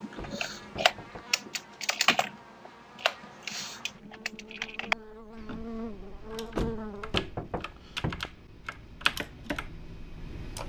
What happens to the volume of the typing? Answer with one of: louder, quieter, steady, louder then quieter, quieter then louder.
quieter.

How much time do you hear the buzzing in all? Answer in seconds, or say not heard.
7 s.